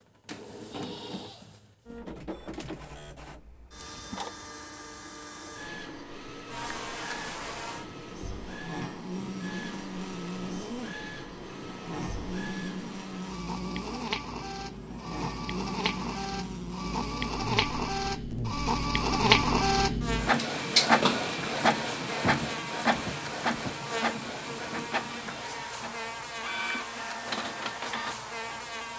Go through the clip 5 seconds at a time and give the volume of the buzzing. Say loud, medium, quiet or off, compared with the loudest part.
off, loud, loud, loud, loud, loud.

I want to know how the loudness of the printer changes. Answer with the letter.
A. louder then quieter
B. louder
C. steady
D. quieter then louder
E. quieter
A.